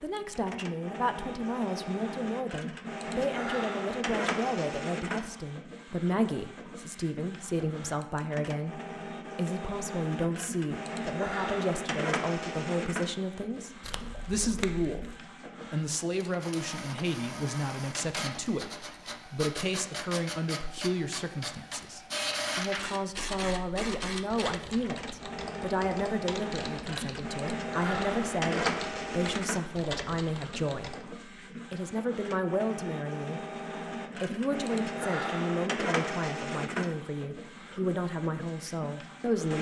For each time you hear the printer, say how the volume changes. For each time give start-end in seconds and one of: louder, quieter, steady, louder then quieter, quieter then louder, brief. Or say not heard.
0.1-39.5 steady.